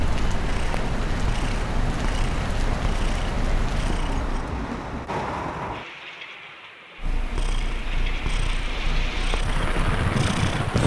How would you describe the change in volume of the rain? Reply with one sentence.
The volume of the rain goes down, then up.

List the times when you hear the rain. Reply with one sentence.
You can hear the rain from 0.0 to 10.8 s.